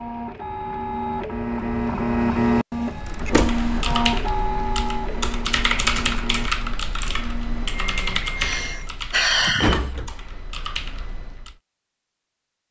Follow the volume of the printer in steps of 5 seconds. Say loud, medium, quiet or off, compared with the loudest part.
loud, medium, off.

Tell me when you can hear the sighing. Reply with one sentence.
The sighing can be heard from 8.3 to 9.9 s.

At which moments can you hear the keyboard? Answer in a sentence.
The keyboard can be heard from 3.0 to 11.6 s.